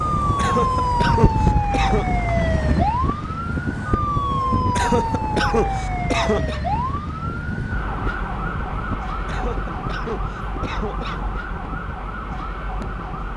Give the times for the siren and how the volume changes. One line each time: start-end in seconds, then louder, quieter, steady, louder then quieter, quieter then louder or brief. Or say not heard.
0.0-13.3 quieter.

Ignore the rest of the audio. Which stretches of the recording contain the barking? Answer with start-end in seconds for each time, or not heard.
not heard.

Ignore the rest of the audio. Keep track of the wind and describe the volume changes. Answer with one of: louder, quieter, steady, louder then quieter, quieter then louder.
quieter.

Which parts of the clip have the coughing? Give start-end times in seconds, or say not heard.
0.3-2.0, 4.8-6.6, 9.2-11.2.